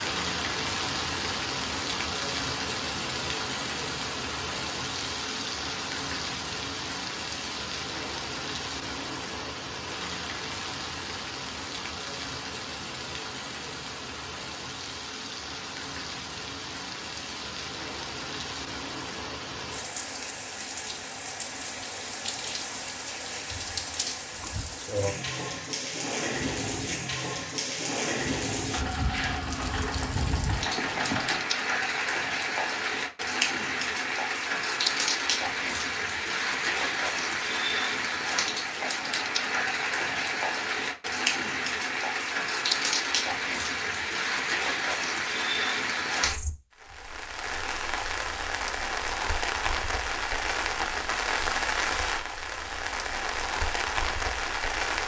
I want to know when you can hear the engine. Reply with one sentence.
The engine can be heard from 28.7 to 31.4 s.